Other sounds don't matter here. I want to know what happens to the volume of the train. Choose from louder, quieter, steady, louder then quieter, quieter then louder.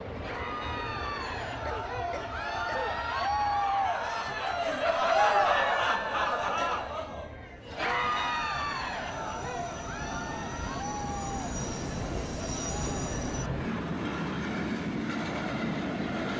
quieter then louder.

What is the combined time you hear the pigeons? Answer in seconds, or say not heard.
not heard.